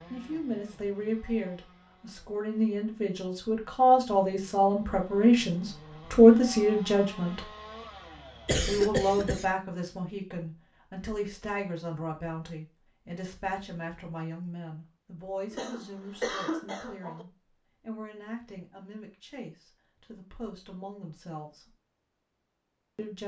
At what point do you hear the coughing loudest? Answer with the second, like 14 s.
9 s.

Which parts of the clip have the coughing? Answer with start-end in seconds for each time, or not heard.
8.4-9.4, 15.5-17.2.